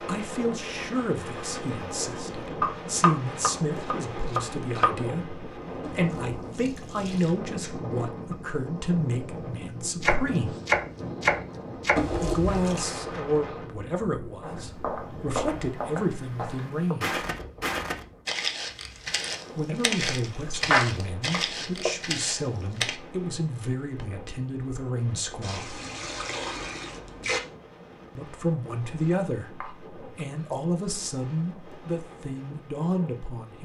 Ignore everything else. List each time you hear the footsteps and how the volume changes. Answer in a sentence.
You can hear the footsteps from 14.4 to 23.0 s, at a steady volume.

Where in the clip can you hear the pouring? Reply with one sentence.
The pouring can be heard from 5.8 to 7.3 s, from 11.9 to 12.8 s and from 25.4 to 27.4 s.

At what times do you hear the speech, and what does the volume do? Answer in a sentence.
The speech can be heard from 0.0 to 10.6 s, at a steady volume; from 12.2 to 17.2 s, getting quieter then louder; from 19.6 to 25.8 s, at a steady volume; and from 28.1 to 33.6 s, getting quieter then louder.